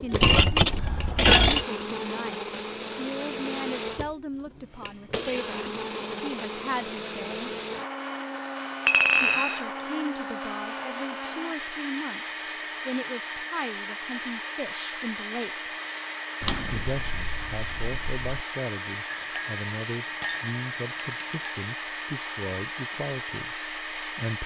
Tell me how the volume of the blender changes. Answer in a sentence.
The volume of the blender stays about the same.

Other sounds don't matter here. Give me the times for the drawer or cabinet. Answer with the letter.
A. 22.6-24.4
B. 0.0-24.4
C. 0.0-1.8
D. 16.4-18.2
D.